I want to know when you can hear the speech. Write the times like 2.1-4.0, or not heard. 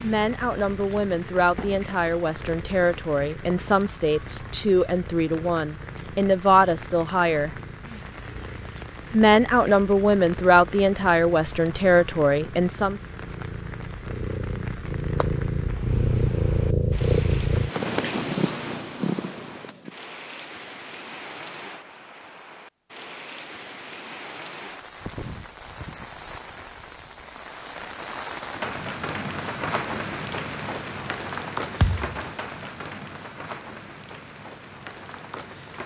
0.0-7.5, 9.1-13.0.